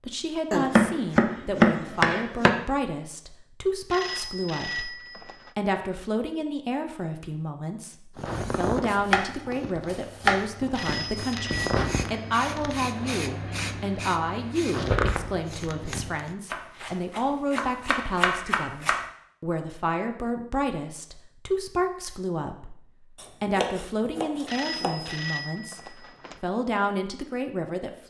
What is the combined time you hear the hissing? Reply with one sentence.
You can hear the hissing for 8 seconds altogether.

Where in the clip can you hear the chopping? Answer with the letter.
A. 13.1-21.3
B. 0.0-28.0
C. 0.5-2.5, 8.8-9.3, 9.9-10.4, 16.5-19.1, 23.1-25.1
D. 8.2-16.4
C.